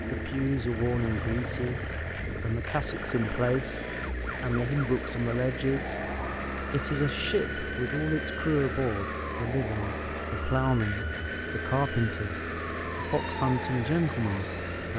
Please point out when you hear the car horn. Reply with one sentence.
The car horn can't be heard in this clip.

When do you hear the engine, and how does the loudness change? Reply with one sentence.
The engine can be heard from 0.0 to 14.9 s, at a steady volume.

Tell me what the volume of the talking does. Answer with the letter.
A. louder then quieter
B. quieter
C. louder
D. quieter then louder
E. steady
E.